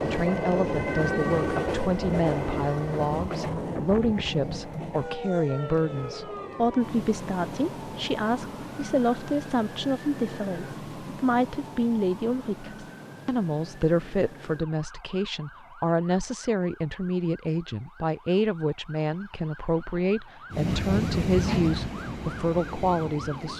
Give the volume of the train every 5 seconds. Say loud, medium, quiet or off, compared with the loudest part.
loud, quiet, off, off, loud.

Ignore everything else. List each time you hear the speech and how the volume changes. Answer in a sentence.
You can hear the speech from 0.0 to 23.5 s, at a steady volume.